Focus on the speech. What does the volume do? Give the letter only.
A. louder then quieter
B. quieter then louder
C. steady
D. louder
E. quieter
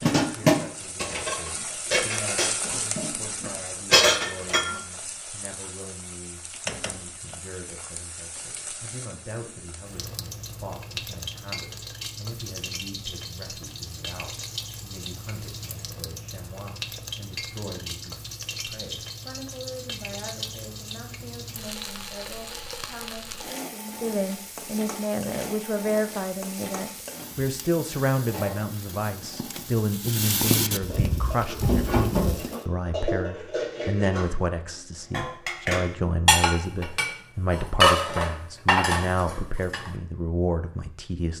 D.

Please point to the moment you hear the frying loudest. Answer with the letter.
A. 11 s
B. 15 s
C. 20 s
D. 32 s
D.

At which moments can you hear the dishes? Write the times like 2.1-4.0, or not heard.
0.0-4.8, 30.9-34.3, 35.1-39.9.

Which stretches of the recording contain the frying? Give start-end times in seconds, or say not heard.
0.1-32.6.